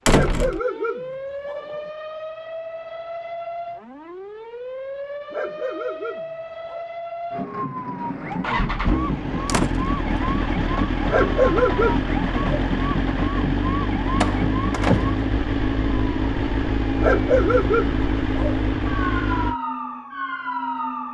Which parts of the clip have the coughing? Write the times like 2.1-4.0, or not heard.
not heard.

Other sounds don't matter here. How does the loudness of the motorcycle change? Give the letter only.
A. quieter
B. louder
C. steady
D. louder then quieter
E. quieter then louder
C.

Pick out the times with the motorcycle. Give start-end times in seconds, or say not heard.
8.3-19.6.